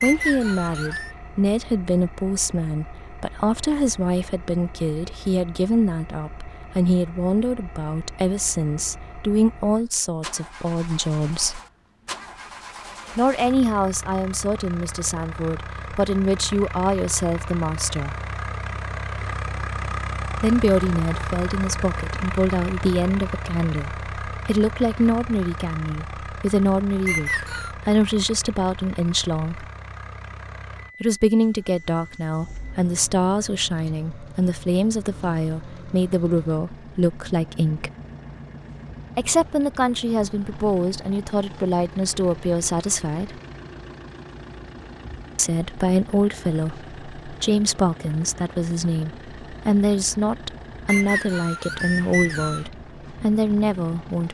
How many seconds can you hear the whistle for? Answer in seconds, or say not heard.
4 s.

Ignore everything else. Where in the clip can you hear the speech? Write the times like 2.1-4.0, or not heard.
0.0-11.6, 13.2-18.1, 20.4-29.6, 31.0-37.9, 39.1-43.4, 45.4-54.3.